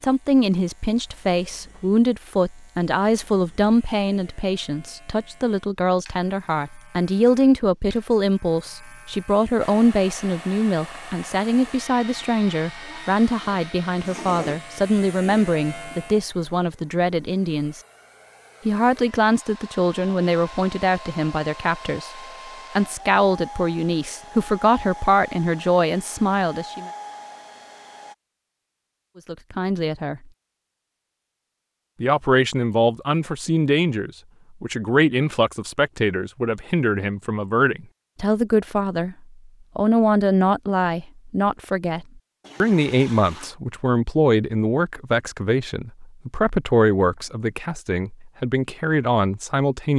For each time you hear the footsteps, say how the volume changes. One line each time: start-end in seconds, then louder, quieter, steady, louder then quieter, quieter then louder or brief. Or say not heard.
not heard.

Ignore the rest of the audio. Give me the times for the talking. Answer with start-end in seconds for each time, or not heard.
0.0-17.8, 18.6-22.1, 22.8-26.9, 29.2-30.2, 32.0-39.1, 39.8-49.9.